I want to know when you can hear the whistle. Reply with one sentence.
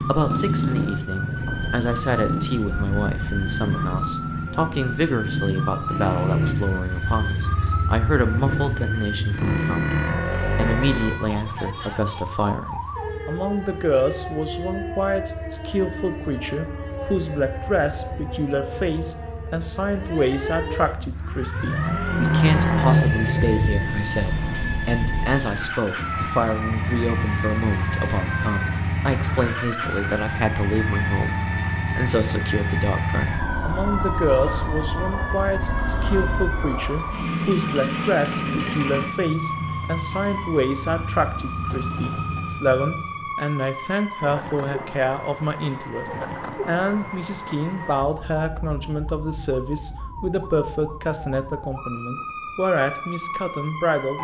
The whistle can't be heard in this clip.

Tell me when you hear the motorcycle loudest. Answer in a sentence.
The loudest moment of the motorcycle is at 23 seconds.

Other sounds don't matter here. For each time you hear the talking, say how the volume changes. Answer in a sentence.
You can hear the talking from 0.1 to 54.1 s, at a steady volume.